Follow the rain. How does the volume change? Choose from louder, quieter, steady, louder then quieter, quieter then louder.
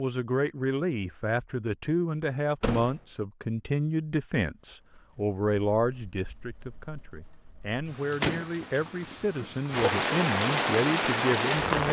louder.